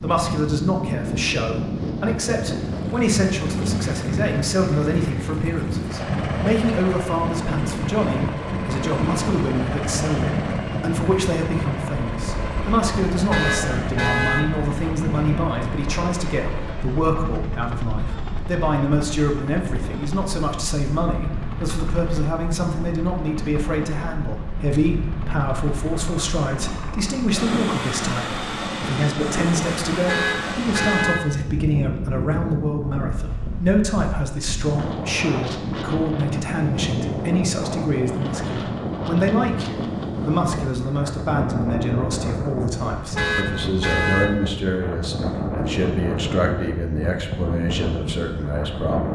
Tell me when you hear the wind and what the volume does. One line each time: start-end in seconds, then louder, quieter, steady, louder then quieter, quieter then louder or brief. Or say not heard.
0.0-49.1 steady.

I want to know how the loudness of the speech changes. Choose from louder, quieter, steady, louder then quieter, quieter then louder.
steady.